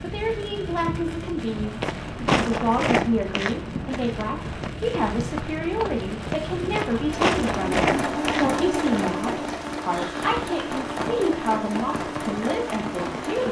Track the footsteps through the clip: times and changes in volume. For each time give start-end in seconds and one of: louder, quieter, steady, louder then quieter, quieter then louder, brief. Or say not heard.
1.4-9.1 quieter then louder.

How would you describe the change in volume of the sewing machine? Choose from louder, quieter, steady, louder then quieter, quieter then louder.
quieter.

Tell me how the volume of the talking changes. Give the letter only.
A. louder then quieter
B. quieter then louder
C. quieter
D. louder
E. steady
E.